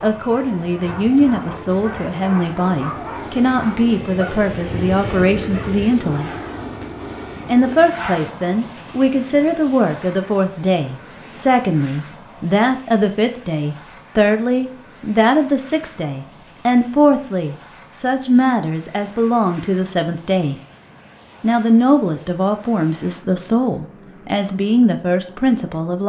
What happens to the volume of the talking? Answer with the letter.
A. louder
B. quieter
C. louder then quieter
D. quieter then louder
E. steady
E.